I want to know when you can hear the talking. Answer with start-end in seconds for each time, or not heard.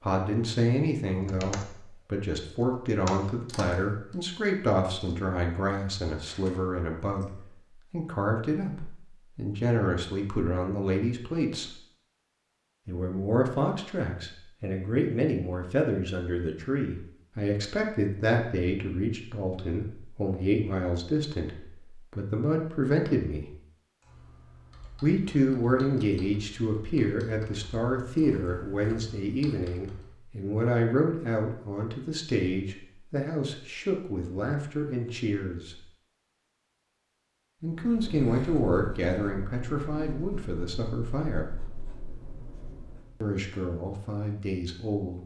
0.0-11.8, 12.8-23.5, 25.0-35.8, 37.6-41.5, 43.2-45.2.